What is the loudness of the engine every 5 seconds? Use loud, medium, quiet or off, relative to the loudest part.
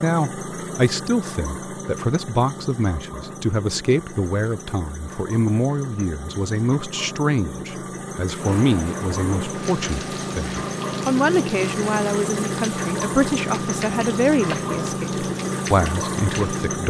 medium, medium, loud, loud.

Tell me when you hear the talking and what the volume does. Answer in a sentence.
The talking can be heard from 0.0 to 16.8 s, at a steady volume.